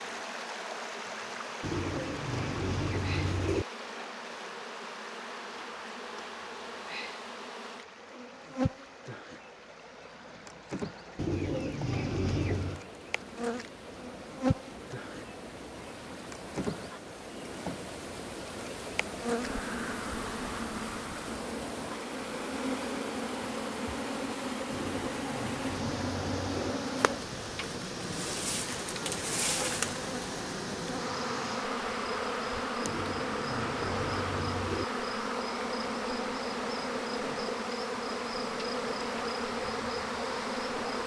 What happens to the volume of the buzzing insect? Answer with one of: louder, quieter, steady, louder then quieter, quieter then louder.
louder.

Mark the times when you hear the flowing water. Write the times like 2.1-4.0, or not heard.
0.0-41.0.